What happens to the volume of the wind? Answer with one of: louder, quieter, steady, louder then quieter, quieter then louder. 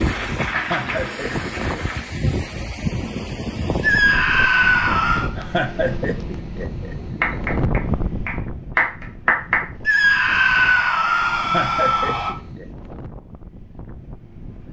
quieter.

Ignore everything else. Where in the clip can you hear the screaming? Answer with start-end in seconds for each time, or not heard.
3.8-5.3, 9.8-12.3.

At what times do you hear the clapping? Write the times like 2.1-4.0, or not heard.
0.0-2.0, 7.2-9.7.